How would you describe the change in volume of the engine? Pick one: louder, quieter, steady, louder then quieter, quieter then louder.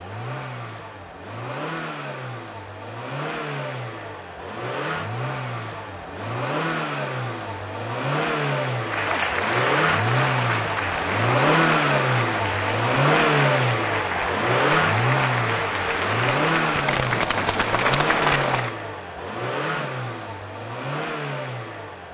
louder then quieter.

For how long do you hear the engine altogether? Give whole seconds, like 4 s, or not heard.
22 s.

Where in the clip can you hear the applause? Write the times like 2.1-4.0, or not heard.
8.8-18.8.